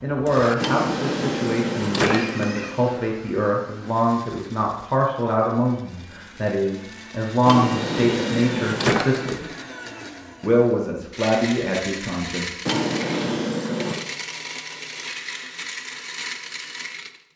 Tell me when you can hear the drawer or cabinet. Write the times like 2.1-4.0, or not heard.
0.6-2.5, 7.5-9.3, 12.7-14.0.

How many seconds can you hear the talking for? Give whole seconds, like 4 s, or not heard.
12 s.